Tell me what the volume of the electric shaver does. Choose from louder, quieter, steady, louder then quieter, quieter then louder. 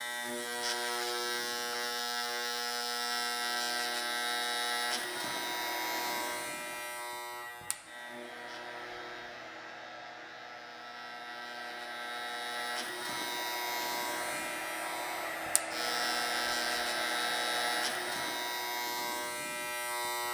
quieter then louder.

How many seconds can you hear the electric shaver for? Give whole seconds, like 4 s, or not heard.
20 s.